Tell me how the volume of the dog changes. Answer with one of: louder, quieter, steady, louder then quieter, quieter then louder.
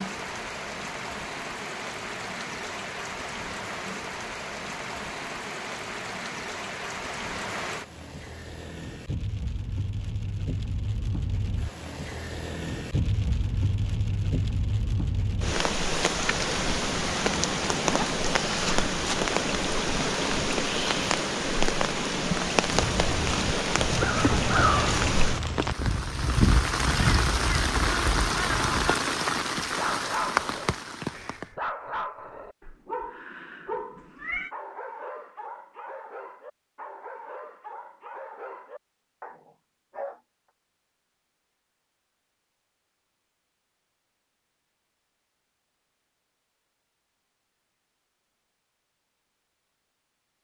quieter.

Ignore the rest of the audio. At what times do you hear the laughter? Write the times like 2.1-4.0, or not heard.
not heard.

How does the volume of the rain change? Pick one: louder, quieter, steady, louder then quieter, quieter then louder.
louder.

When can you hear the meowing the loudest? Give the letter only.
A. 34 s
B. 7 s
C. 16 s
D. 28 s
A.